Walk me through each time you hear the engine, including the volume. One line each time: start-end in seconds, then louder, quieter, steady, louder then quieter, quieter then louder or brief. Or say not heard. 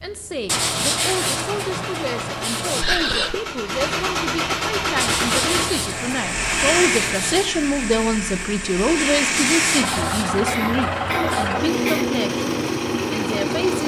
0.0-13.8 louder.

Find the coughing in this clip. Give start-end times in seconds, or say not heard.
2.8-3.4, 10.4-12.1.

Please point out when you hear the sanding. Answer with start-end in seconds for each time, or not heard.
0.5-2.9, 5.0-7.5, 9.3-11.6.